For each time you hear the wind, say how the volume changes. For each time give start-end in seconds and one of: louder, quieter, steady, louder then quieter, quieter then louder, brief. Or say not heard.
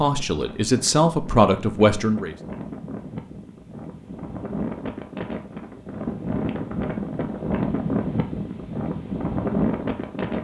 0.0-10.3 louder.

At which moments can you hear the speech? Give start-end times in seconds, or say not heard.
0.0-2.4.